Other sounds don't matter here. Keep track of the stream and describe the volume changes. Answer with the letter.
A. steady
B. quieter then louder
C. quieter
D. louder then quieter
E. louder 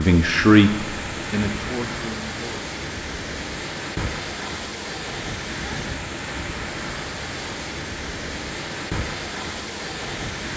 A.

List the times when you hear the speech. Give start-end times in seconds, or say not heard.
0.0-2.6.